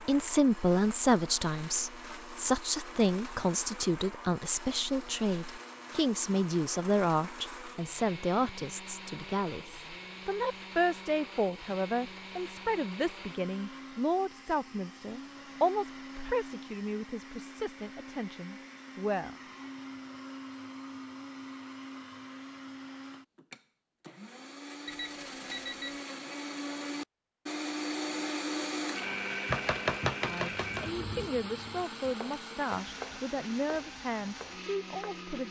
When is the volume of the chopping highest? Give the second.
30 s.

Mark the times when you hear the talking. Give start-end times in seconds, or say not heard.
0.1-19.4, 30.2-35.4.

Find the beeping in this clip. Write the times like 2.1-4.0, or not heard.
24.9-26.0.